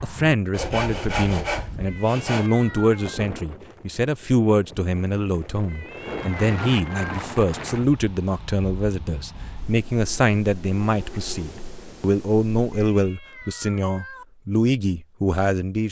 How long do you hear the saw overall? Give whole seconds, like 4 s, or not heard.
2 s.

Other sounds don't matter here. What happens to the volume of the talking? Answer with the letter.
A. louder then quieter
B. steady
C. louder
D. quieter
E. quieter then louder
B.